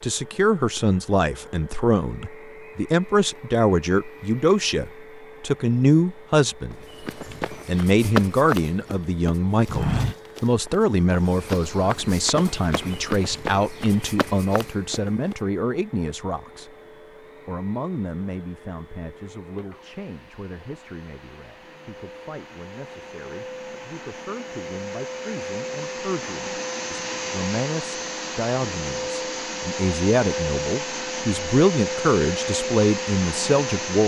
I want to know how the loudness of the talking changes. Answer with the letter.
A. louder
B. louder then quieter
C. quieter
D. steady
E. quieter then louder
E.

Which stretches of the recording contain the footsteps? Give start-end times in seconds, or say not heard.
6.7-15.3.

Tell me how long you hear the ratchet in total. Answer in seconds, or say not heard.
not heard.